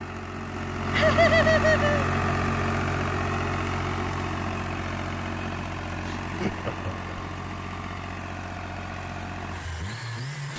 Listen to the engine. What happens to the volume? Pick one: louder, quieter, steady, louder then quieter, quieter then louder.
quieter.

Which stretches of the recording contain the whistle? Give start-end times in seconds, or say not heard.
not heard.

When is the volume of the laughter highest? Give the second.
1 s.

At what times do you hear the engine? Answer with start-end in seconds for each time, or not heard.
0.0-10.5.